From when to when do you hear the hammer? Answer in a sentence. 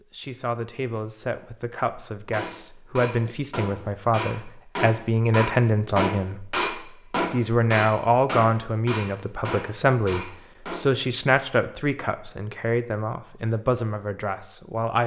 The hammer can be heard from 2.3 to 10.8 s.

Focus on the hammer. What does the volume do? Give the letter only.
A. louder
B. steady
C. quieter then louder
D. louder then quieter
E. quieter
D.